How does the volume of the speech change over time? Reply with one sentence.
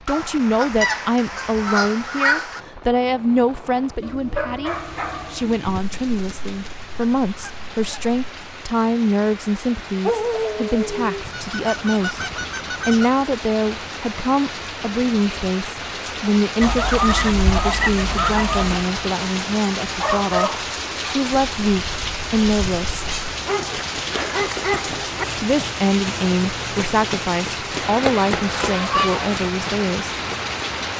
The volume of the speech stays about the same.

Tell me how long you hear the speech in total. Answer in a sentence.
The speech can be heard for 28 seconds in total.